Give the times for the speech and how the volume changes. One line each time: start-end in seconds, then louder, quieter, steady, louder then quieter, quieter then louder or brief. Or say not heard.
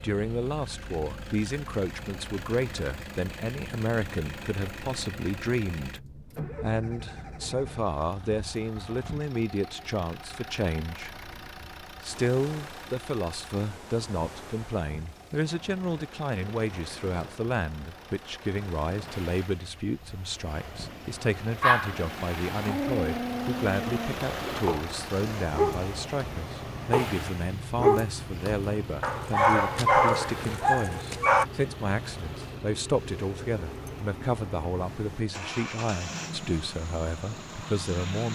0.0-38.3 steady.